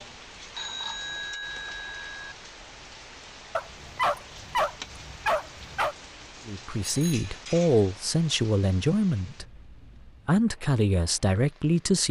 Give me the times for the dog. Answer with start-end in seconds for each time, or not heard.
3.5-6.0.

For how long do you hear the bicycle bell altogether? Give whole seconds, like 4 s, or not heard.
2 s.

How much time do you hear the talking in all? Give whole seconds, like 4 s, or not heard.
5 s.